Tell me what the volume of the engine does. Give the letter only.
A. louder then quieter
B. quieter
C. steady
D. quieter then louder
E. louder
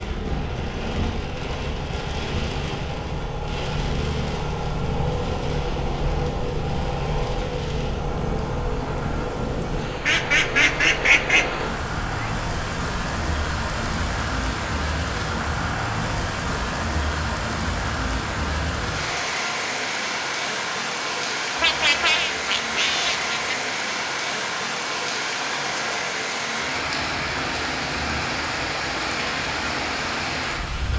A.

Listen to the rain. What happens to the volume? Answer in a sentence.
The loudness of the rain goes up.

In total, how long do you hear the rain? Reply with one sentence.
The rain can be heard for 31 seconds in total.